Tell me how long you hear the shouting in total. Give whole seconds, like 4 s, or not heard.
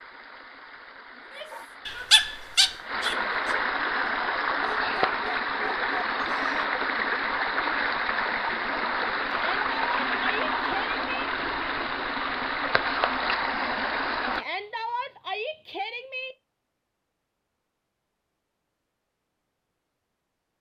5 s.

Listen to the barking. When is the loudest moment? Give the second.
2 s.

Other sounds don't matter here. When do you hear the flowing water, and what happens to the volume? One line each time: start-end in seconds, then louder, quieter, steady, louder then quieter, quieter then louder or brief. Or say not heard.
0.0-14.4 louder.